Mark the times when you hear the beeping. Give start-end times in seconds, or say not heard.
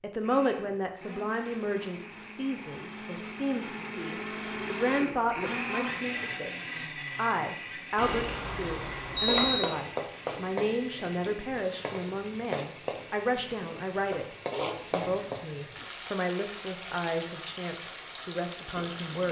8.0-9.6.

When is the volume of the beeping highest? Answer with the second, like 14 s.
9 s.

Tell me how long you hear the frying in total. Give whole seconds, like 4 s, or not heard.
10 s.